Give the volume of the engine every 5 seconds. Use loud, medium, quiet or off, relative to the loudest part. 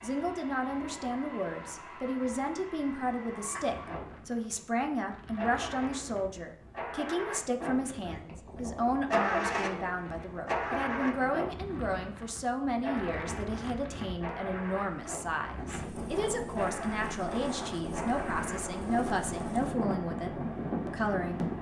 medium, loud, loud, medium, medium.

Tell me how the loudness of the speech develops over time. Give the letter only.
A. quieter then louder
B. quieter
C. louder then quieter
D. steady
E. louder
D.